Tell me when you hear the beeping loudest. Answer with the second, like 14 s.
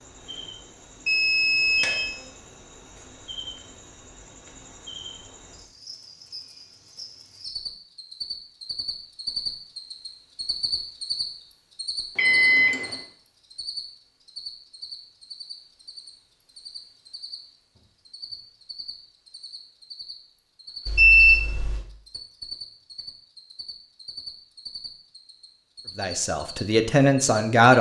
21 s.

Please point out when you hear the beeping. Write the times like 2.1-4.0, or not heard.
1.1-2.1, 12.2-12.9, 20.9-21.9.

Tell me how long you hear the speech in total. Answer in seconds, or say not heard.
2 s.